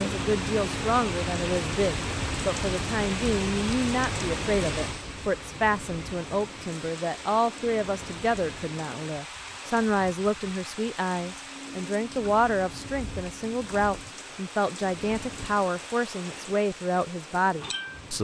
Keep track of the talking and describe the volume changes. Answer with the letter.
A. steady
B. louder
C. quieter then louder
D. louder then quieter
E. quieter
A.